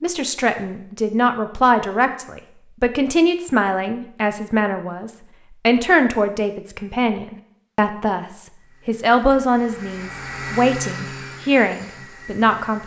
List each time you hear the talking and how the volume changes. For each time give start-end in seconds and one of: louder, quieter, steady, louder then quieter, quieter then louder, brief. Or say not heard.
0.0-12.8 steady.